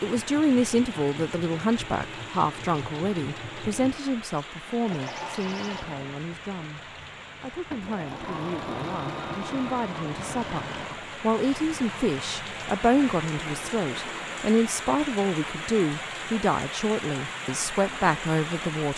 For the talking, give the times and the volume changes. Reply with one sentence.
You can hear the talking from 0.0 to 18.9 s, getting quieter then louder.